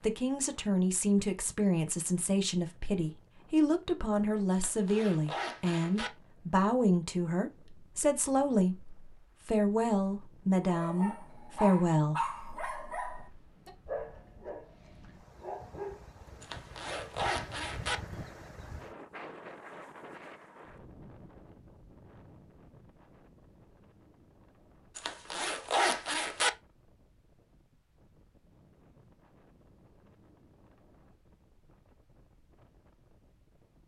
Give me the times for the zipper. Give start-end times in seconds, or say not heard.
4.5-6.1, 16.4-18.0, 24.9-26.5.